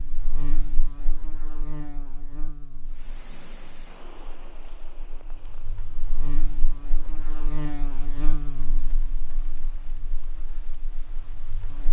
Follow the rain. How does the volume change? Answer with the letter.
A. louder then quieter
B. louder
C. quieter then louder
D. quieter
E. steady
D.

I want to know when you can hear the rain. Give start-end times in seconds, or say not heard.
2.8-11.8.